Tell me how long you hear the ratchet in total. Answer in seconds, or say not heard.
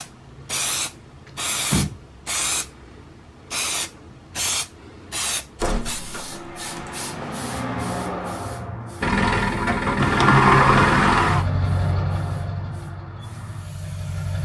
not heard.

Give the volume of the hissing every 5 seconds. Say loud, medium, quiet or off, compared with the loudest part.
loud, loud, medium.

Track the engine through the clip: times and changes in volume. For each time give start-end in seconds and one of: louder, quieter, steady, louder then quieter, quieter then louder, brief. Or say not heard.
9.0-14.3 quieter.